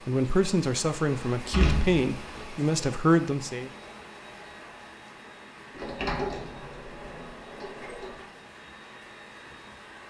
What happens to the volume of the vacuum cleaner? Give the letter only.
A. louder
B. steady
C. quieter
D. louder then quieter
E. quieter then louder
B.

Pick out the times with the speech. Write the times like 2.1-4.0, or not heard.
0.1-3.7.